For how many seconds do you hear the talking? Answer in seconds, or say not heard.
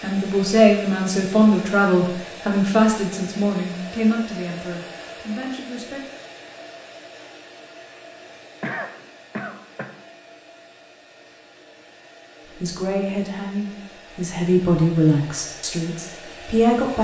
10 s.